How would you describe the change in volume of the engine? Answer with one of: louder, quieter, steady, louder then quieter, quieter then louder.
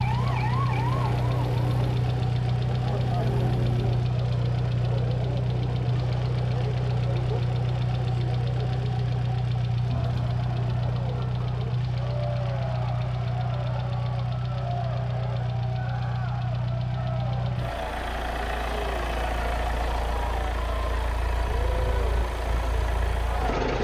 quieter.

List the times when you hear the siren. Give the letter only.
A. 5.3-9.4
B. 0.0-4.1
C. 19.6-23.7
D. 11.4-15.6
B.